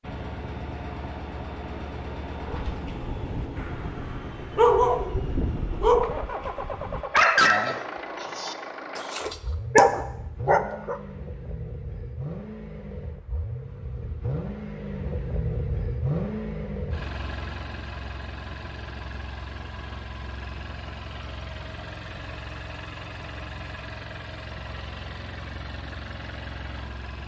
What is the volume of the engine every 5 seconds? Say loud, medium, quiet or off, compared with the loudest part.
loud, loud, loud, loud, medium, medium.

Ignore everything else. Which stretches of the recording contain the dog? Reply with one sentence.
The dog can be heard from 2.5 to 11.0 s.